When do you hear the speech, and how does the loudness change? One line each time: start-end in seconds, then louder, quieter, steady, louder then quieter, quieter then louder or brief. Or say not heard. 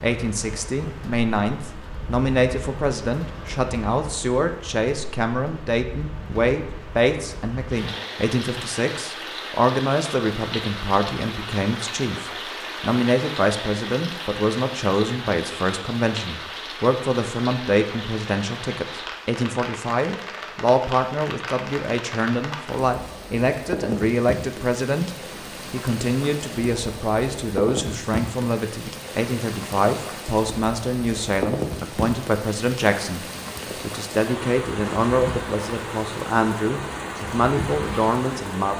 0.0-25.1 steady
25.7-38.7 steady.